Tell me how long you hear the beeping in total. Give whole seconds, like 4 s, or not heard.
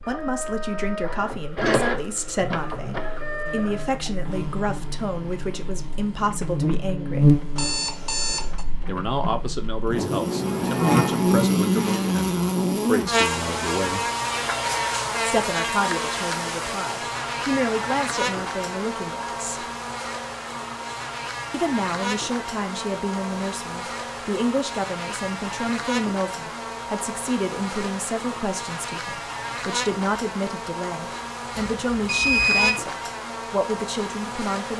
2 s.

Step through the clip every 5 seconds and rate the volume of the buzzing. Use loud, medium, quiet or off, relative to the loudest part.
quiet, loud, loud, medium, medium, medium, medium.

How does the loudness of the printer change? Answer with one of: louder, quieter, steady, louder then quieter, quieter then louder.
quieter.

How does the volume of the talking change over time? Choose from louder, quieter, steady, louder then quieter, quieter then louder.
steady.